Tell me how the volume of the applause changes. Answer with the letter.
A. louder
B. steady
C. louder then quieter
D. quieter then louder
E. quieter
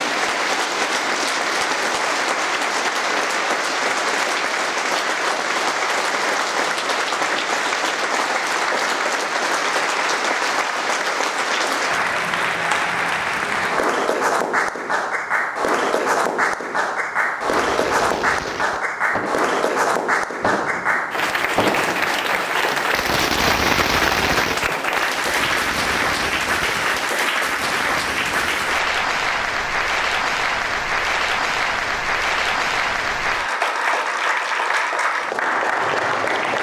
B.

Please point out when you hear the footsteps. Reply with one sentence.
You can't hear the footsteps here.